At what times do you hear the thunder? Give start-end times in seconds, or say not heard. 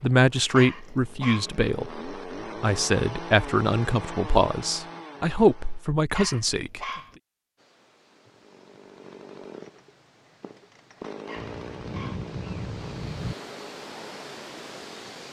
11.3-13.3.